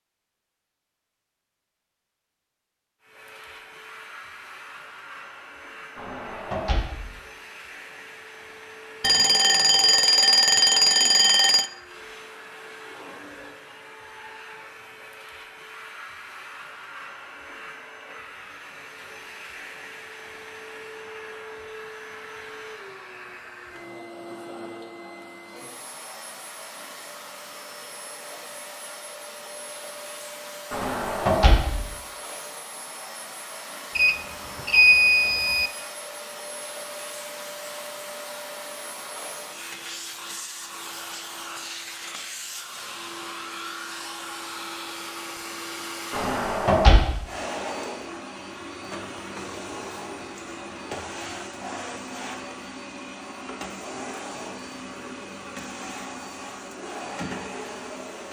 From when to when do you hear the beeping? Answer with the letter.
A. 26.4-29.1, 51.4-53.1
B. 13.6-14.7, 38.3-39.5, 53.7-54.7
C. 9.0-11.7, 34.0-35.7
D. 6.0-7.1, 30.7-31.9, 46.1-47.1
C.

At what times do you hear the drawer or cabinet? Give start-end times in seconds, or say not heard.
6.0-7.1, 30.7-31.9, 46.1-47.1.